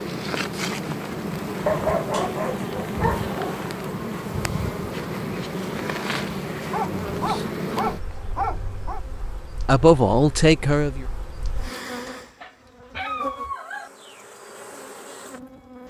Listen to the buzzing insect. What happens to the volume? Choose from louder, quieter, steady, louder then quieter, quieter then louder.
quieter.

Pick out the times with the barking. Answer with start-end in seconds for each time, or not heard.
1.6-3.6, 6.7-9.0, 12.2-13.9.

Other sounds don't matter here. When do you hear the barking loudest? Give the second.
2 s.